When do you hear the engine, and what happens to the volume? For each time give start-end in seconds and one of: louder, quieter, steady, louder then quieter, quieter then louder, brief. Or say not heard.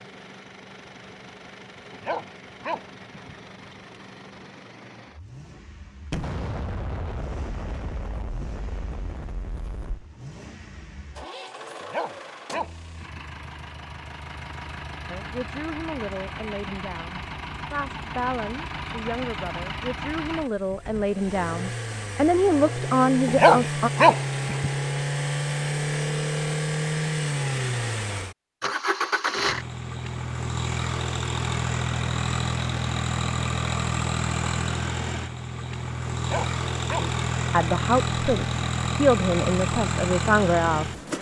0.0-41.1 louder.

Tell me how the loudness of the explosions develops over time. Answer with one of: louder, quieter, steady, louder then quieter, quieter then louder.
quieter.